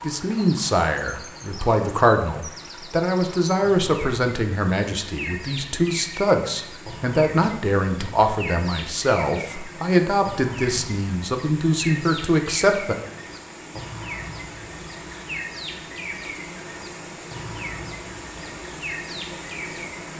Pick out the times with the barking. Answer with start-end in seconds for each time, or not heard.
not heard.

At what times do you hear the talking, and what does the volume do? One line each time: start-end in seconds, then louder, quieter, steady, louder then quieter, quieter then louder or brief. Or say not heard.
0.0-12.9 steady.